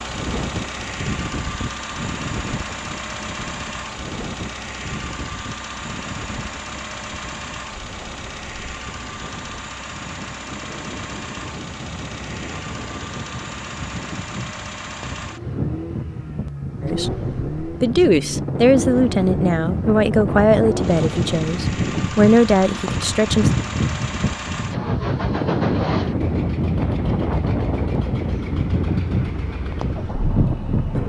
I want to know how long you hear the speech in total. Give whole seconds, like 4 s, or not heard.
7 s.